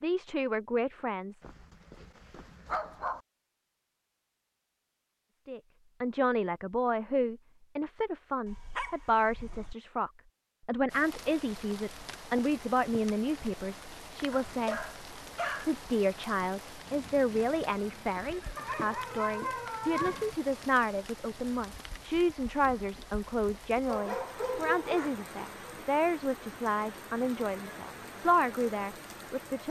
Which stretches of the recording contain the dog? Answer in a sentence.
The dog can be heard from 1.4 to 3.2 s, from 8.4 to 9.8 s, from 14.3 to 15.7 s, from 18.6 to 20.4 s and from 23.9 to 25.1 s.